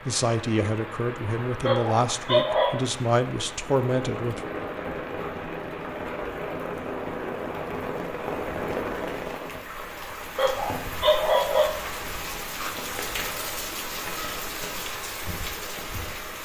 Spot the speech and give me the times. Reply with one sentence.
The speech can be heard from 0.0 to 4.5 s.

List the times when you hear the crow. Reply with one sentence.
The crow can't be heard in this clip.